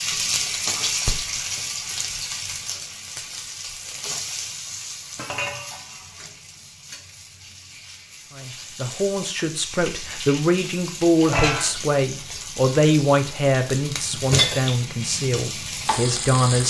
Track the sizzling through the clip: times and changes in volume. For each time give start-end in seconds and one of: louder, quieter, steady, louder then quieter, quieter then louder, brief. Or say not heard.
0.0-16.6 quieter then louder.